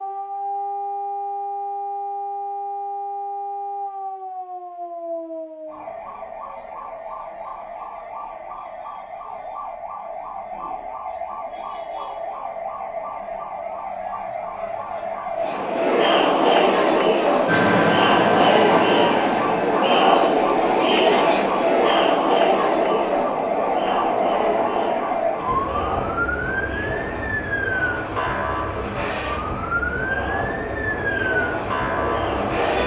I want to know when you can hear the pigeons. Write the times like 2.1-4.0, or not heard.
not heard.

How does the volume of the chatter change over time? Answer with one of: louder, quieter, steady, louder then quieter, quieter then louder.
quieter.